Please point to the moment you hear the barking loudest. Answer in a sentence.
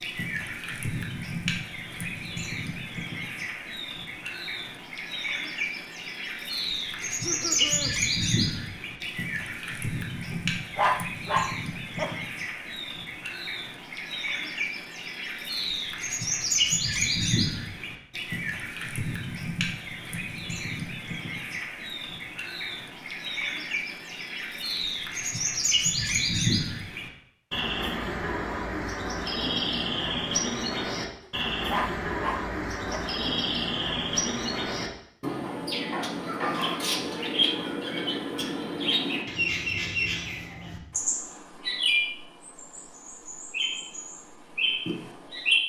The volume of the barking peaks at 11 seconds.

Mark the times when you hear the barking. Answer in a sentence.
The barking can be heard from 10.3 to 12.2 s and from 31.2 to 33.1 s.